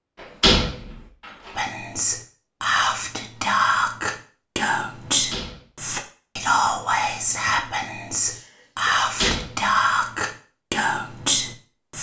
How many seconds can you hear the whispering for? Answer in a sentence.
You can hear the whispering for 10 seconds altogether.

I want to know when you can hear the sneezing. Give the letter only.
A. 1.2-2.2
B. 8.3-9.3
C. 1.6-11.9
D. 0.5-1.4
B.